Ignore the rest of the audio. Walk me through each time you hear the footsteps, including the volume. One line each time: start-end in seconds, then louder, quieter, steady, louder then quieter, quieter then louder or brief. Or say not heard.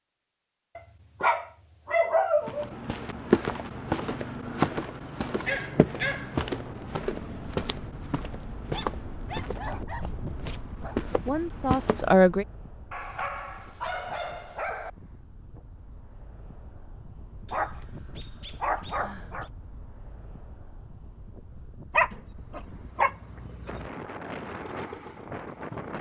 2.5-12.2 quieter.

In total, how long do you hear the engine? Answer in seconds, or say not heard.
2 s.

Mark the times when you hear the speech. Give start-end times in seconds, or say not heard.
11.2-12.4.